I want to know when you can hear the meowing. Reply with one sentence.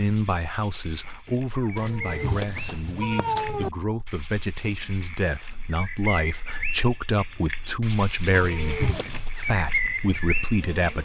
The meowing can be heard from 1.8 to 3.7 s and from 8.3 to 9.3 s.